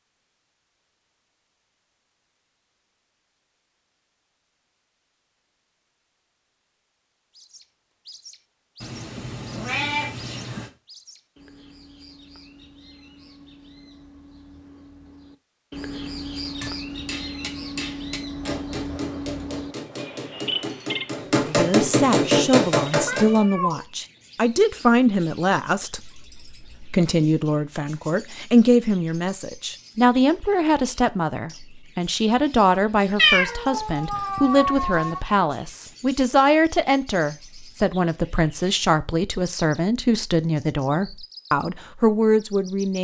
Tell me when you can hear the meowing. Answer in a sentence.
You can hear the meowing from 8.8 to 10.7 s, from 23.1 to 23.9 s and from 33.1 to 35.2 s.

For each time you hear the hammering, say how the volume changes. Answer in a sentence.
The hammering can be heard from 16.4 to 23.4 s, getting louder.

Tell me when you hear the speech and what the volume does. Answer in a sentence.
The speech can be heard from 21.4 to 42.9 s, at a steady volume.